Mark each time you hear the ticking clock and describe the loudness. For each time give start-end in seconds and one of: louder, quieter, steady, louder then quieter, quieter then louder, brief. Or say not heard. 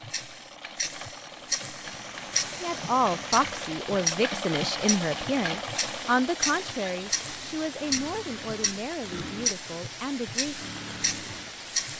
0.0-11.9 steady.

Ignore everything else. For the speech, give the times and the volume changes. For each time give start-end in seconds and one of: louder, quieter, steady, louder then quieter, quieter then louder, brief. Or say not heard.
2.6-10.6 quieter.